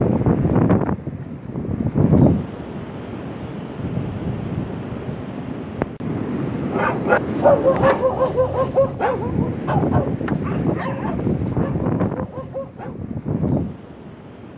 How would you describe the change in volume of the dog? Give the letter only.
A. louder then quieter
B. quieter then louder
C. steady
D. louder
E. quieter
E.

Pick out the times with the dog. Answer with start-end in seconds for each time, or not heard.
6.7-12.9.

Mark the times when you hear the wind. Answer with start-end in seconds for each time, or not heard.
0.0-14.5.